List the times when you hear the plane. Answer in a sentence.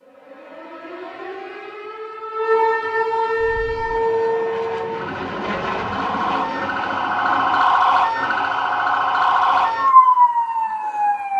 You can hear the plane from 3.4 to 7.7 s.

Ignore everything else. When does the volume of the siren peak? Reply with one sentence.
The volume of the siren peaks at 10 seconds.